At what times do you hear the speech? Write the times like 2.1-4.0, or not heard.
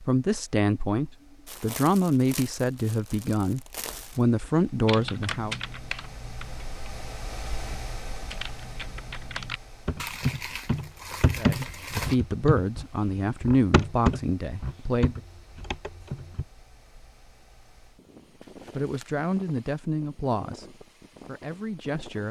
0.0-5.5, 11.3-15.2, 18.8-22.2.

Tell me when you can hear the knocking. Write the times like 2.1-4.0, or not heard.
not heard.